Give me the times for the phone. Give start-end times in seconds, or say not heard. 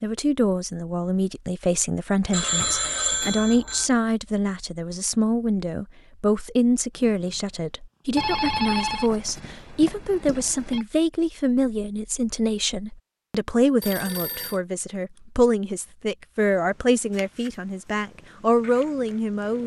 2.3-3.9, 8.2-10.8, 13.8-14.6.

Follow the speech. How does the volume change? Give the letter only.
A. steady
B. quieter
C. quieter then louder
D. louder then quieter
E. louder
A.